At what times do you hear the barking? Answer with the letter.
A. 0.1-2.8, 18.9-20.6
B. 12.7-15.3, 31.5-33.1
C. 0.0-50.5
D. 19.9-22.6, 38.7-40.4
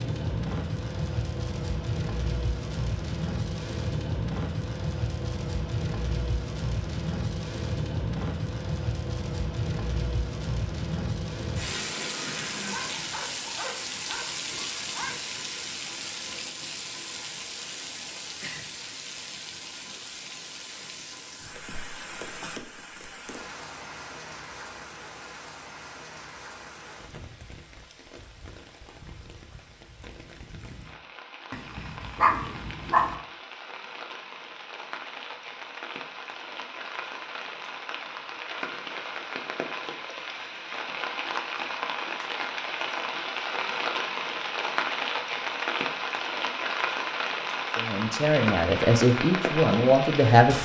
B.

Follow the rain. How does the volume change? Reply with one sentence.
The loudness of the rain goes down, then up.